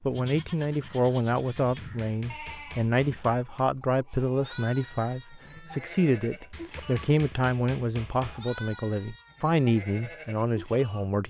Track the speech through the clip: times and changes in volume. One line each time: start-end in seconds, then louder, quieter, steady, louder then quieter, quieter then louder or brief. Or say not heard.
0.0-11.2 steady.